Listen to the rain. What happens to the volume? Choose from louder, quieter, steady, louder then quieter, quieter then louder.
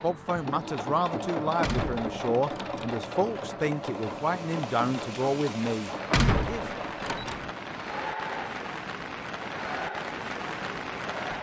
louder.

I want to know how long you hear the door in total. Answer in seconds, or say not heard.
3 s.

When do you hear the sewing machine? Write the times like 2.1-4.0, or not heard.
0.0-11.3.